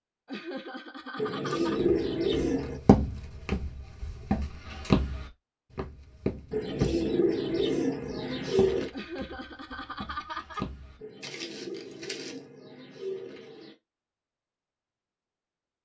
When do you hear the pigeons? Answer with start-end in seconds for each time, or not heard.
1.1-2.8, 6.5-8.9, 10.9-13.8.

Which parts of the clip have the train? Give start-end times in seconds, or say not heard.
not heard.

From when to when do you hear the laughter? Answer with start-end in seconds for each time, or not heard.
0.2-1.8, 8.9-10.7.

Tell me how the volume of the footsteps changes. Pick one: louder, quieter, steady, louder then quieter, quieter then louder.
quieter then louder.